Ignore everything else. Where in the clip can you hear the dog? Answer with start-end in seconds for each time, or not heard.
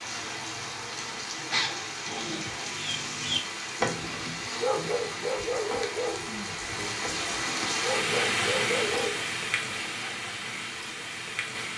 1.4-9.2.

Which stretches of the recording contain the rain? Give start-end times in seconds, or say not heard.
0.0-11.7.